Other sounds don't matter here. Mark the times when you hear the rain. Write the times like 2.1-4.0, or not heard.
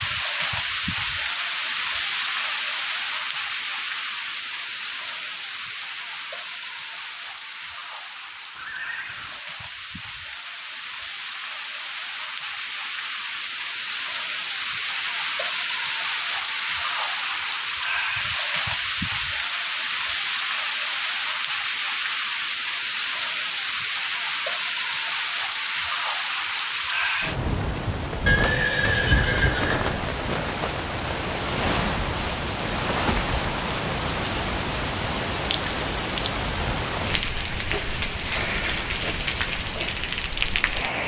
0.0-41.0.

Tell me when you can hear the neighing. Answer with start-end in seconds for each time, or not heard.
8.6-9.4, 28.2-30.0.